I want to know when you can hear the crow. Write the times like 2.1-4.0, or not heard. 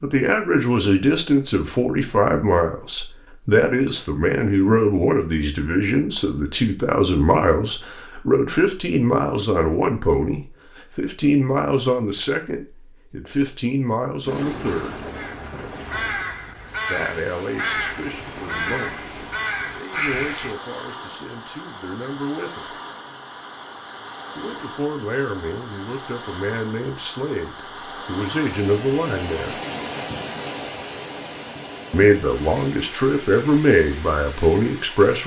15.1-20.6.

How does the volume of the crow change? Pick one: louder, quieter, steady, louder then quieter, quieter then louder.
steady.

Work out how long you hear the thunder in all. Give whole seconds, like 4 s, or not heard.
2 s.